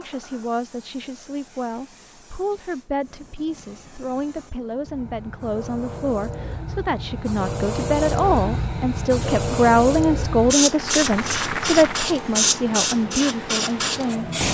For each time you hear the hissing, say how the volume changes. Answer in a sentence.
The hissing can be heard from 0.0 to 14.4 s, getting louder.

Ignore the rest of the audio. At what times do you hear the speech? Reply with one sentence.
The speech can be heard from 0.0 to 14.3 s.